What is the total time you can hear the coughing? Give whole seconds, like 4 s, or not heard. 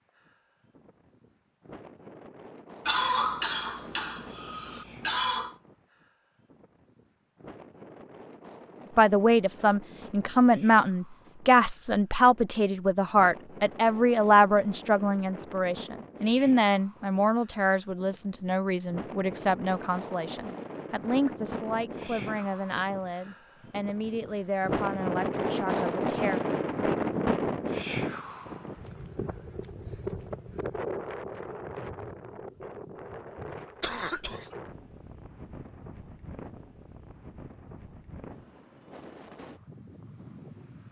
3 s.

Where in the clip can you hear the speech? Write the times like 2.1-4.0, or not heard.
8.9-26.4.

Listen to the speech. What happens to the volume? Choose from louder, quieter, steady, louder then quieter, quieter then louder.
quieter.